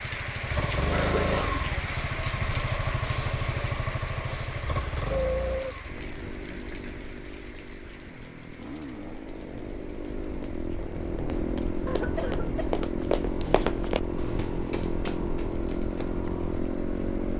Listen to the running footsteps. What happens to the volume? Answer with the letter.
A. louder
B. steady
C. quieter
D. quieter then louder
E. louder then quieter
E.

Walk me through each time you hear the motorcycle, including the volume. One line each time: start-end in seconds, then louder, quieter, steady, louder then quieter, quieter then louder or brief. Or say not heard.
0.0-17.3 quieter then louder.